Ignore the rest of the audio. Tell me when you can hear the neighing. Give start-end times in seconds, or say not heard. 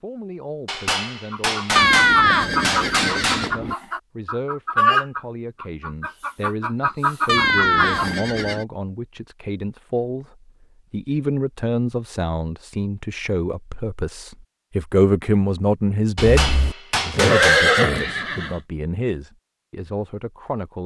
1.8-3.8, 7.2-8.7, 16.1-18.6.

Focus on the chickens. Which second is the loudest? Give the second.
5 s.